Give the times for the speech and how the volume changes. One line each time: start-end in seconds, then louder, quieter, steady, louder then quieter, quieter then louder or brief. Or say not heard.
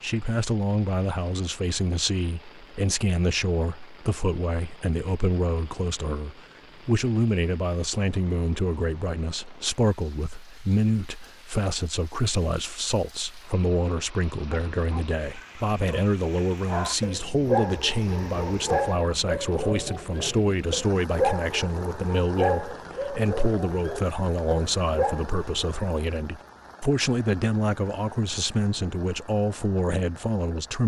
0.0-30.8 steady.